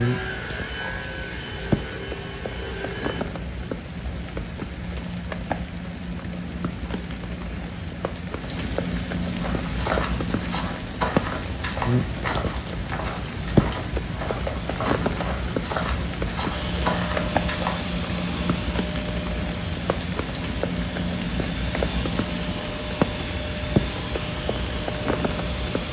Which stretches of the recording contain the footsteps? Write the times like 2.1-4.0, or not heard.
9.4-17.9.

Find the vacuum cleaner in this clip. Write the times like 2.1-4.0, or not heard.
0.0-3.2, 16.5-25.8.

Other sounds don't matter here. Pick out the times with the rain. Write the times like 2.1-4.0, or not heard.
0.0-25.8.